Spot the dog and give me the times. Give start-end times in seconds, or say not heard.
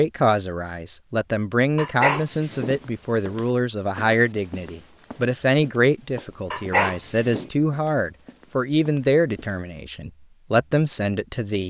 1.8-2.8, 6.5-7.5.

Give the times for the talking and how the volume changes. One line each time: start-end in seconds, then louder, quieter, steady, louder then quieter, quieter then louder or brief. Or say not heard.
0.0-11.6 steady.